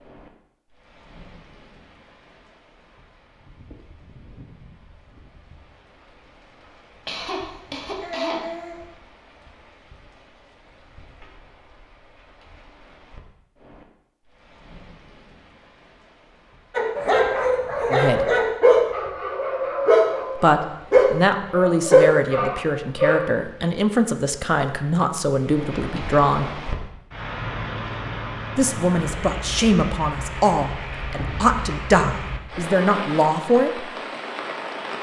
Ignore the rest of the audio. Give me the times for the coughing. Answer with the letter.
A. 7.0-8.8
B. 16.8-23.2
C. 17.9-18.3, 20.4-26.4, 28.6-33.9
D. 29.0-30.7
A.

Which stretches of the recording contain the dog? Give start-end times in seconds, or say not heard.
16.8-23.2.